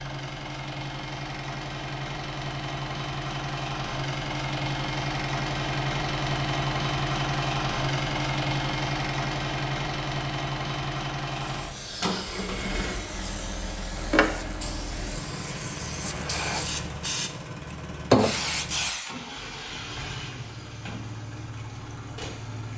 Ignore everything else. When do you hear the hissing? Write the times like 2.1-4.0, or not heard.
11.4-19.1.